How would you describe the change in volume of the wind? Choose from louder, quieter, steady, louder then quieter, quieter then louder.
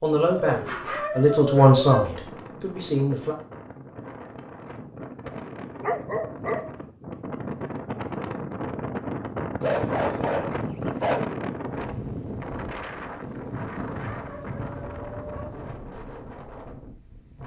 louder then quieter.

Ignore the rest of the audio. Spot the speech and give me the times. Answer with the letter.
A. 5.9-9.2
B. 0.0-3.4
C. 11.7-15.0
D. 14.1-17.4
B.